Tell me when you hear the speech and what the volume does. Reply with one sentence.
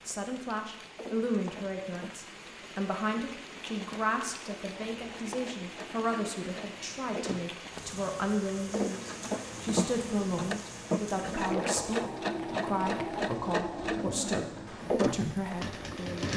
The speech can be heard from 0.1 to 16.3 s, at a steady volume.